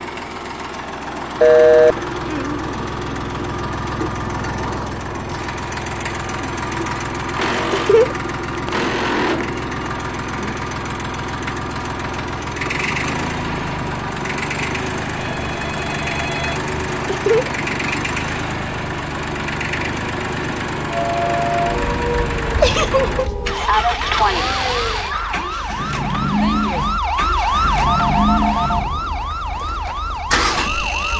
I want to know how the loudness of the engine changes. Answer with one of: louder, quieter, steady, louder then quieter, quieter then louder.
steady.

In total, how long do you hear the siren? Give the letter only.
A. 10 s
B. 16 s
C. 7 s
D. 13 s
A.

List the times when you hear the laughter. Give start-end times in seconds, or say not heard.
7.7-8.7, 17.1-17.5, 22.6-23.3.